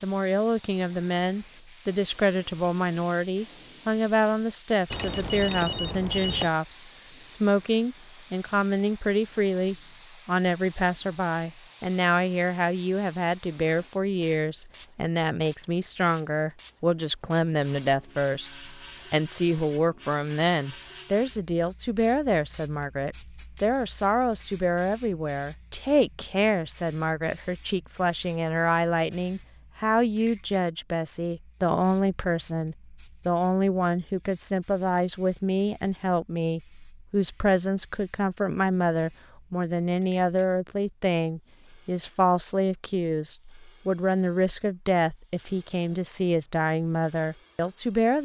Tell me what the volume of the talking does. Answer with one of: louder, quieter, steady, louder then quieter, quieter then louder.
steady.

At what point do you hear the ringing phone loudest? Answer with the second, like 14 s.
6 s.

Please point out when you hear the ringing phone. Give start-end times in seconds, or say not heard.
4.9-6.5.